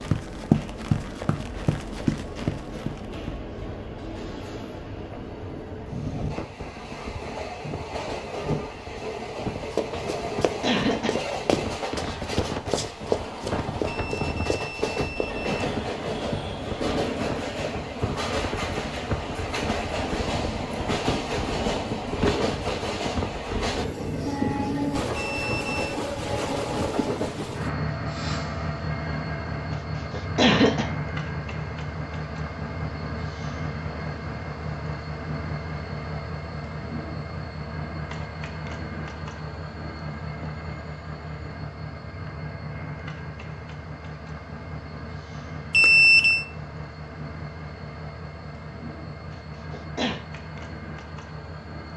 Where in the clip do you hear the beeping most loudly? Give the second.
46 s.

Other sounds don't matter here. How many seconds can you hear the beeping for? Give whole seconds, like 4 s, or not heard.
3 s.